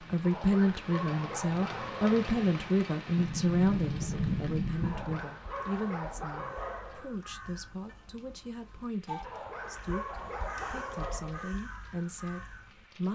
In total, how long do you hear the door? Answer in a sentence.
The door can be heard for 2 seconds in total.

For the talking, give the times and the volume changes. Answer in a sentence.
You can hear the talking from 0.0 to 13.1 s, getting quieter.